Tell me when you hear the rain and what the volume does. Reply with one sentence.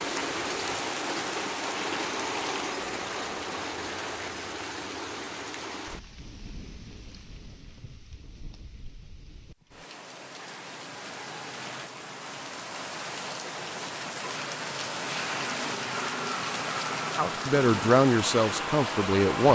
You can hear the rain from 0.0 to 19.5 s, getting quieter then louder.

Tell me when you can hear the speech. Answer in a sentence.
The speech can be heard from 17.1 to 19.5 s.